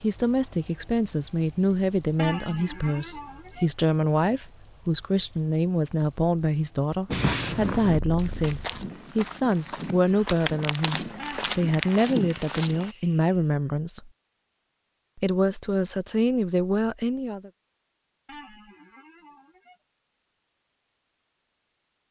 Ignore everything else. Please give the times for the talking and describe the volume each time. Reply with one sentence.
You can hear the talking from 0.0 to 14.1 s, at a steady volume; and briefly from 15.2 to 17.5 s.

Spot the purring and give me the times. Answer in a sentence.
The purring can be heard from 7.1 to 8.9 s.